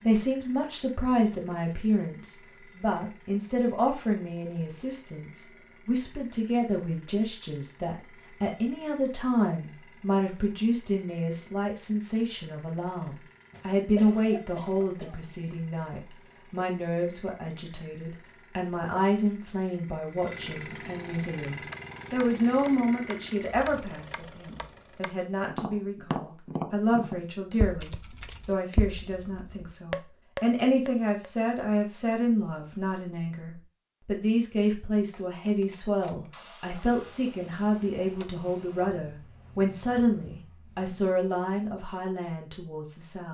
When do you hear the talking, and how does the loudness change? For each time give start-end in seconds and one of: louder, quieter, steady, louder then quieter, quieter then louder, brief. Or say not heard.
0.0-43.3 steady.